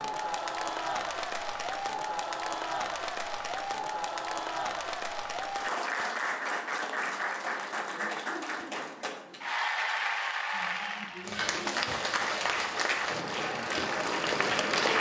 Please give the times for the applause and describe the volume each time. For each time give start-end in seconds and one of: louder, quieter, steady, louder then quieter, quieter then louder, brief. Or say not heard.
0.0-14.9 steady.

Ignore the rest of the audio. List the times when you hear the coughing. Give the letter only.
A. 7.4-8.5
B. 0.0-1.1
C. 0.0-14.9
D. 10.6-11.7
D.